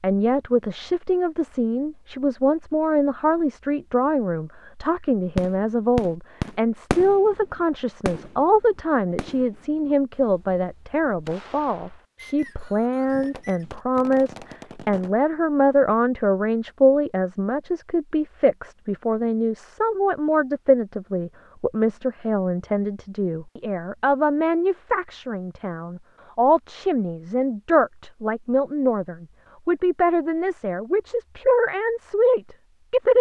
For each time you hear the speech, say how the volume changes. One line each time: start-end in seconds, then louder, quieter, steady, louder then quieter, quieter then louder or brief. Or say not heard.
0.0-33.1 steady.